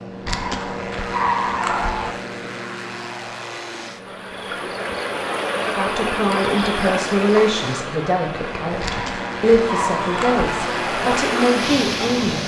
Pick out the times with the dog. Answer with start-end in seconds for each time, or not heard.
0.2-2.1, 8.8-10.6.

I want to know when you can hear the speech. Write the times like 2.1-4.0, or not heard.
5.7-12.4.